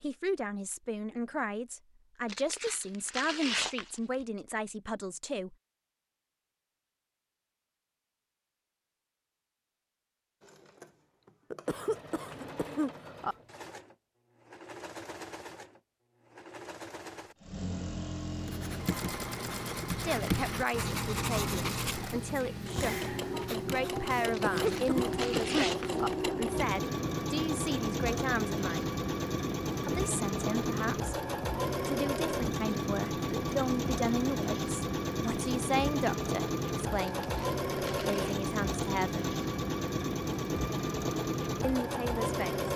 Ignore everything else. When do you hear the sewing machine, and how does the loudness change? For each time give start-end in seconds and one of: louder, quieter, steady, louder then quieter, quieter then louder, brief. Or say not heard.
10.4-42.7 louder.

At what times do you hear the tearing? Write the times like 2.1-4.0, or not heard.
2.2-4.2, 24.3-26.1, 37.0-38.4.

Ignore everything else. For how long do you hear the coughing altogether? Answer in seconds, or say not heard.
4 s.